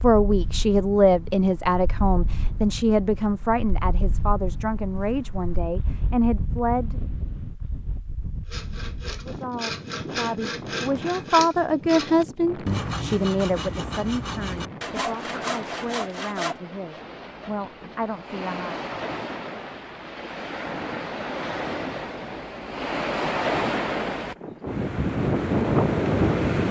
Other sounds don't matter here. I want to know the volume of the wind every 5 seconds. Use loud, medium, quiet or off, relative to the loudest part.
quiet, quiet, quiet, quiet, medium, loud.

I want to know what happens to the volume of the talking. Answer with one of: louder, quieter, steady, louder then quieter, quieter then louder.
quieter.